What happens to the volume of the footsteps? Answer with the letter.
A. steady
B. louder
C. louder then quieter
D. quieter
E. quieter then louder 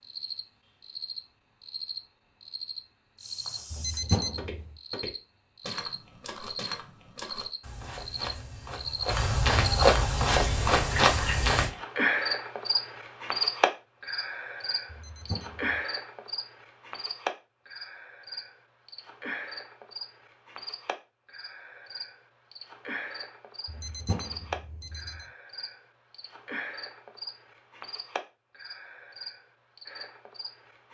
B.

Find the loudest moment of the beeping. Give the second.
4 s.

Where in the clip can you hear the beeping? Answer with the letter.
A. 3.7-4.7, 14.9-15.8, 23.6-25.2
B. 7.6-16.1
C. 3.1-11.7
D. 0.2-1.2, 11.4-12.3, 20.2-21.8
A.